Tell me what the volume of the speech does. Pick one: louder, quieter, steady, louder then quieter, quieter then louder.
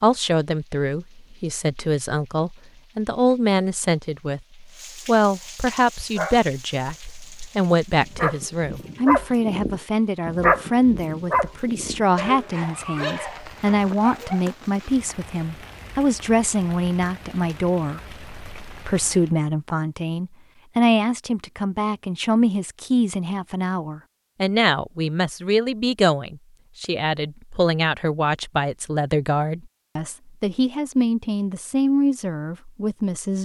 steady.